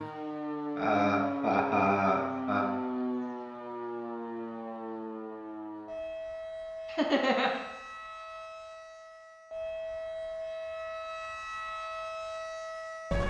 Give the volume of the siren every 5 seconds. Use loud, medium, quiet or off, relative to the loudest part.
loud, medium, loud.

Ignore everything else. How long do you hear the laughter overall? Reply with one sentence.
The laughter can be heard for 3 seconds in total.